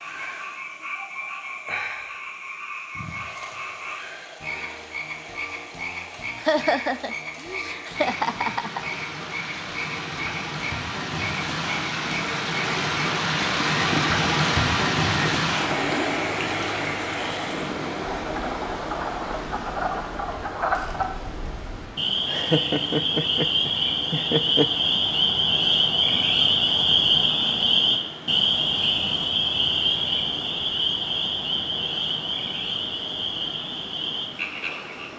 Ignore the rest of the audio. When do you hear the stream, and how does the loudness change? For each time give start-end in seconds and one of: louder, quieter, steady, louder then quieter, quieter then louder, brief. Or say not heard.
0.0-35.1 louder then quieter.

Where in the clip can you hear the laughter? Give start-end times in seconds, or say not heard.
6.3-8.8, 22.2-24.7.